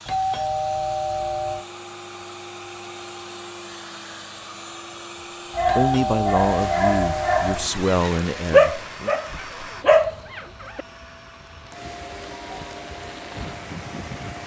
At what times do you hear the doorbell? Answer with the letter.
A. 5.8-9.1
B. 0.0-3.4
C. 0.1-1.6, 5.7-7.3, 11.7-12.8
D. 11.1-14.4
C.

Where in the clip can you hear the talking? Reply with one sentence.
You can hear the talking from 5.8 to 9.1 s.